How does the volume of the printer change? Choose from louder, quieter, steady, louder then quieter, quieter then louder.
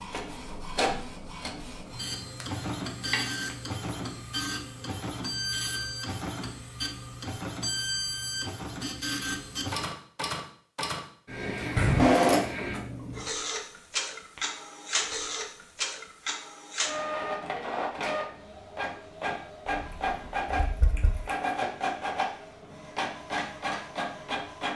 steady.